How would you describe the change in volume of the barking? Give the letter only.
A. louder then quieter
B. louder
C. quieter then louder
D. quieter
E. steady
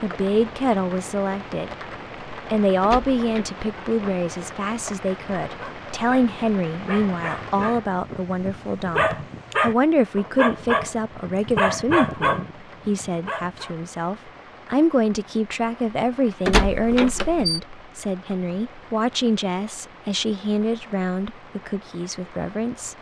B.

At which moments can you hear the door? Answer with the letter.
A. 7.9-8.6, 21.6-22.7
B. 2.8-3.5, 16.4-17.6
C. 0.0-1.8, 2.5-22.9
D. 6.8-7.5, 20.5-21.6
B.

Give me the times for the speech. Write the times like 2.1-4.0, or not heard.
0.0-1.8, 2.5-22.9.